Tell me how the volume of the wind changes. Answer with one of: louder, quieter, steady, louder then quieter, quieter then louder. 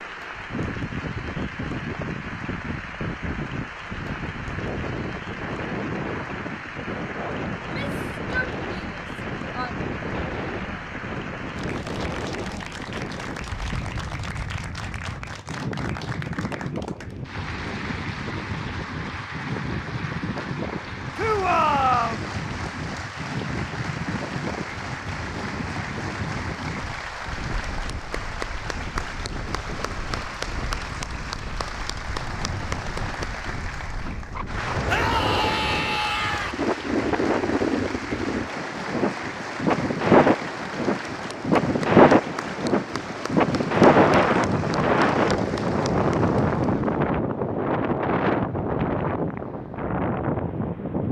louder.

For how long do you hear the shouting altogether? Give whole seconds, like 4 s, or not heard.
5 s.